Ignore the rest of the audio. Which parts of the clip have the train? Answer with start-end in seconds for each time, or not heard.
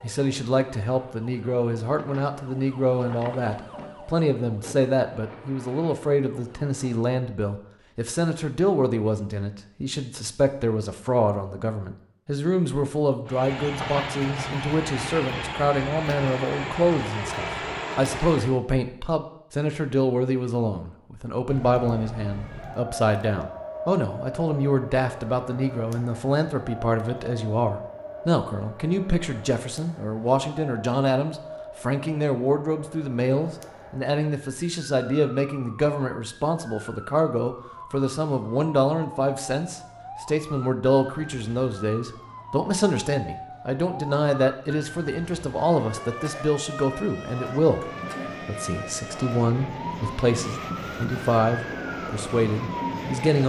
13.2-18.6, 47.8-53.4.